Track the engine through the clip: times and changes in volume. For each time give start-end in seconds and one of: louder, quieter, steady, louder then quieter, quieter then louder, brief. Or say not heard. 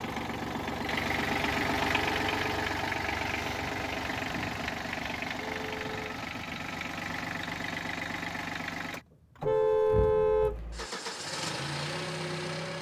0.0-12.7 quieter.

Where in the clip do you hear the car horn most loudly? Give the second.
10 s.